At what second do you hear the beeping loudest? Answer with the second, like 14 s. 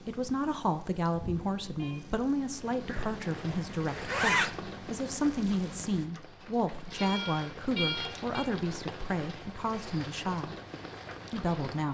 8 s.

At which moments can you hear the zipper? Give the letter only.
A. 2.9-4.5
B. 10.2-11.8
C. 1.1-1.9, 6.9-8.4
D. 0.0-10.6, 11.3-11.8
A.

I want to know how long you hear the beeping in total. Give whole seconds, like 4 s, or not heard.
2 s.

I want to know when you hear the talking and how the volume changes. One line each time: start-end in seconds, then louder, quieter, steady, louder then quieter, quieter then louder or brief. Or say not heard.
0.0-10.6 steady
11.3-11.8 brief.